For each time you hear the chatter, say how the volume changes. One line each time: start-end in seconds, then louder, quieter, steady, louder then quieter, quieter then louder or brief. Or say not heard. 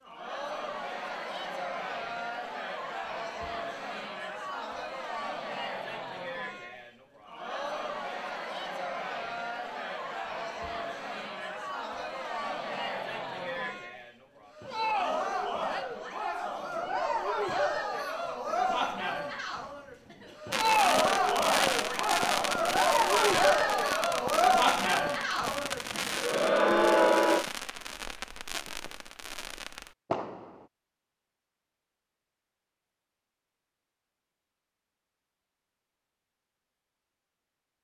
0.1-27.4 louder.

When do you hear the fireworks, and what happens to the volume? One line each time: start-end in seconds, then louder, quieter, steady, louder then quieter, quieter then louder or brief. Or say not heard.
20.5-30.7 quieter.